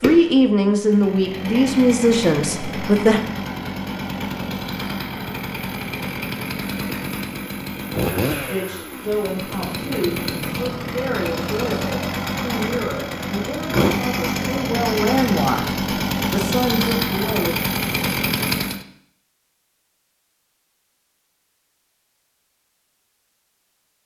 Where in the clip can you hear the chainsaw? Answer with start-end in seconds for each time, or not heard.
0.0-18.9.